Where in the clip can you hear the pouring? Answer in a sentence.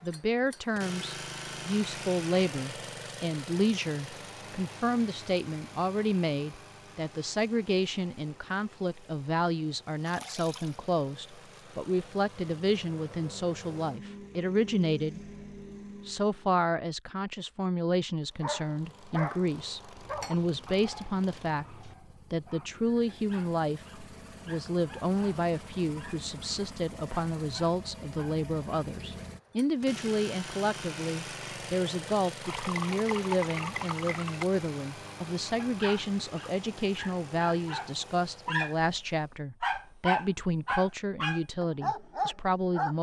You can hear the pouring from 10.1 to 10.8 s, from 19.9 to 21.9 s and from 32.4 to 34.5 s.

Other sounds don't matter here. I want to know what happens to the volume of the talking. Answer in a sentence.
The volume of the talking stays about the same.